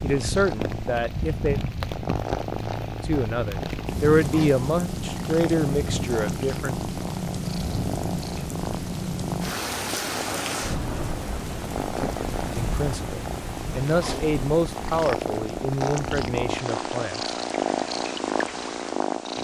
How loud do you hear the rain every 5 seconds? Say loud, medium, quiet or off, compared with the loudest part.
loud, loud, loud, medium.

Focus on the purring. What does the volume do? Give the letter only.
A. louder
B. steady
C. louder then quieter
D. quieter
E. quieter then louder
A.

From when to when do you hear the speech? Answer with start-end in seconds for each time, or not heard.
0.0-1.6, 3.0-6.8, 12.5-17.3.